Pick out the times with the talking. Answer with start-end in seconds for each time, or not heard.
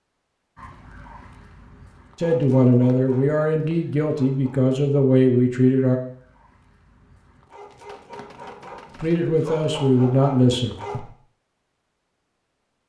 2.1-6.0, 9.0-11.1.